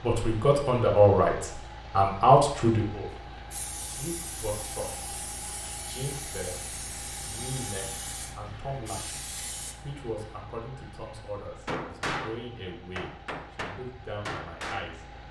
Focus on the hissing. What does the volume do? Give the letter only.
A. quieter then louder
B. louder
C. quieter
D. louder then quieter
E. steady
E.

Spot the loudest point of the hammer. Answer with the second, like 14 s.
12 s.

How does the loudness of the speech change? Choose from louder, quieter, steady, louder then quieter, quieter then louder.
quieter.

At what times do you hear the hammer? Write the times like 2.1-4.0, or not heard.
11.7-15.1.